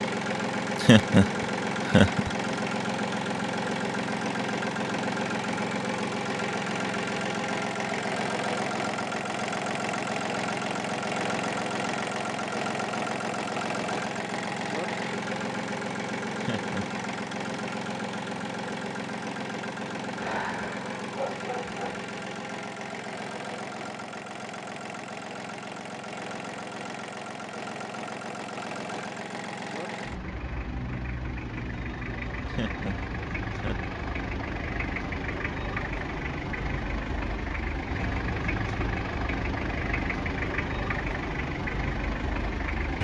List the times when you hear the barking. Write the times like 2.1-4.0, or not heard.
20.1-22.0.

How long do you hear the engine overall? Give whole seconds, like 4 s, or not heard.
43 s.